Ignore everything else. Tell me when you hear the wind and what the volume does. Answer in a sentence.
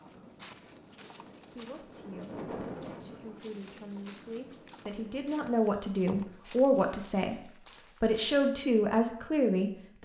The wind can be heard from 0.0 to 5.5 s, getting louder then quieter.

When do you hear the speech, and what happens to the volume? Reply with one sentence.
The speech can be heard from 1.5 to 10.0 s, getting louder.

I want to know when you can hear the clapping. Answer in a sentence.
You can't hear the clapping here.